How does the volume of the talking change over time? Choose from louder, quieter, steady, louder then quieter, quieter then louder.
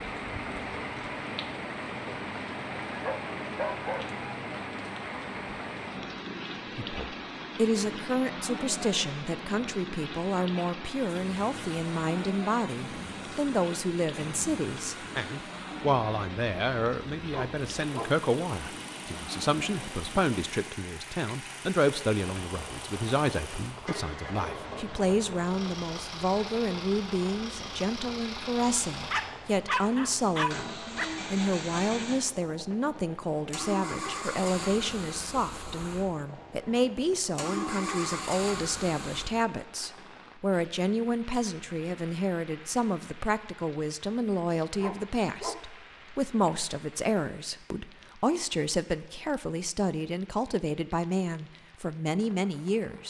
steady.